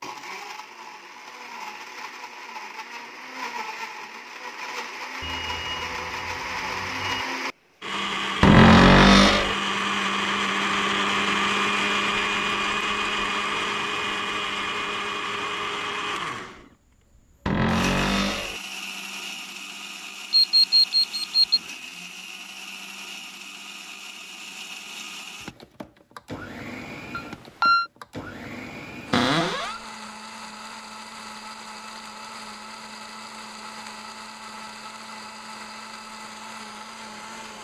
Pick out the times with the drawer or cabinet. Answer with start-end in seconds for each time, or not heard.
8.4-9.6, 17.4-18.6, 29.1-29.8.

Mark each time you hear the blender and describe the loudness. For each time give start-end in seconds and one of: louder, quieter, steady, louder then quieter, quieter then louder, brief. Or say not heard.
0.0-37.6 louder then quieter.